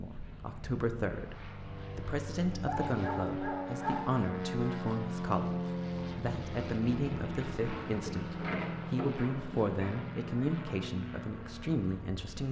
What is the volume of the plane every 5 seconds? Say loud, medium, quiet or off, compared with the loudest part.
loud, loud, medium.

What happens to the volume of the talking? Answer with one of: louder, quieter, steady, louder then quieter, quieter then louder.
steady.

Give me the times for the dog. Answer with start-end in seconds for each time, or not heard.
2.6-4.2, 7.5-9.9.